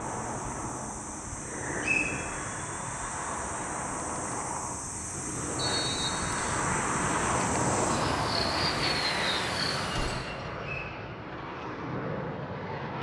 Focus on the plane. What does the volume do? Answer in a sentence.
The loudness of the plane goes up, then down.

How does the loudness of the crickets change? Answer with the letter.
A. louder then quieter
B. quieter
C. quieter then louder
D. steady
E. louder
E.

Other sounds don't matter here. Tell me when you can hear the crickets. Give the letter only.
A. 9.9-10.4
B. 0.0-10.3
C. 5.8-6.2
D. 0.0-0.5
B.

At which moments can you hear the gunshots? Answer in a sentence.
The gunshots can be heard from 9.9 to 10.4 s.